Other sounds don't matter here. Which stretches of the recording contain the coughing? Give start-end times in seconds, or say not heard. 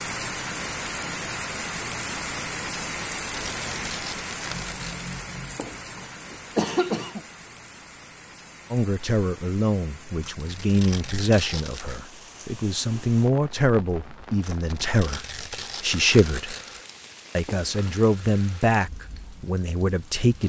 5.5-7.2, 17.4-17.9.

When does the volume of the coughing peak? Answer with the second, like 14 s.
7 s.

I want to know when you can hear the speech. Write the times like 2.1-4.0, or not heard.
8.7-16.6, 17.4-20.4.